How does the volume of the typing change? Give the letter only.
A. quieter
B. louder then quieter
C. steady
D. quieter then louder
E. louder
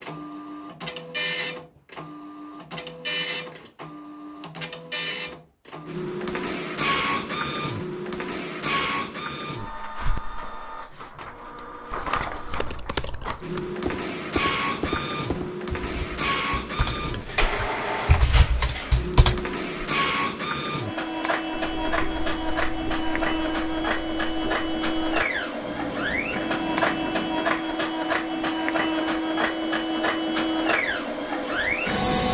E.